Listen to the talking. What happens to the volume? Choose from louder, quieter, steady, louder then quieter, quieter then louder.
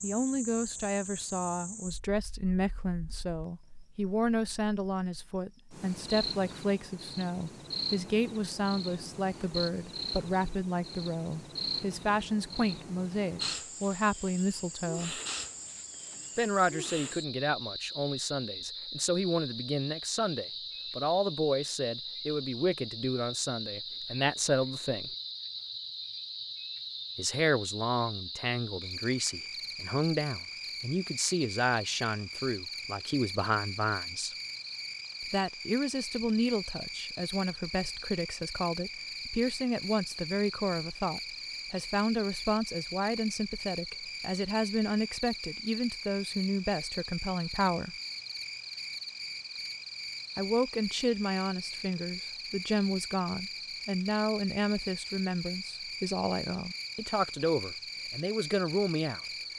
steady.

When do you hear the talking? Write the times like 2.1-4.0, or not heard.
0.0-15.2, 16.4-25.1, 27.1-34.4, 35.2-48.0, 50.4-59.2.